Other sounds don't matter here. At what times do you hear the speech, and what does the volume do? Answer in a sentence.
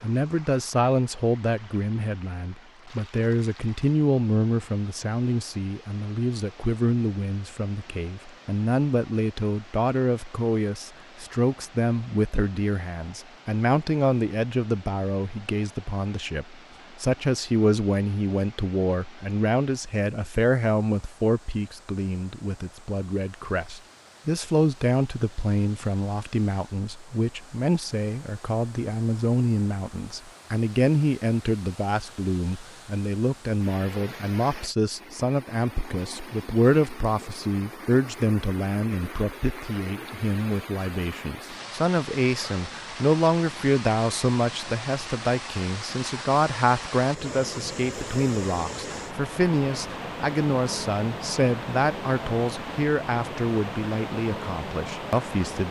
The speech can be heard from 0.0 to 55.6 s, at a steady volume.